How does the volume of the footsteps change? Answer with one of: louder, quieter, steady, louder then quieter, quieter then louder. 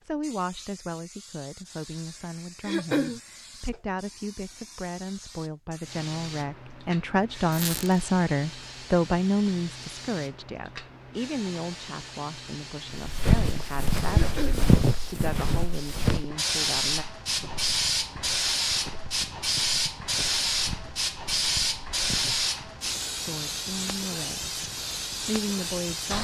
quieter.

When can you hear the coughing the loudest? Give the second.
3 s.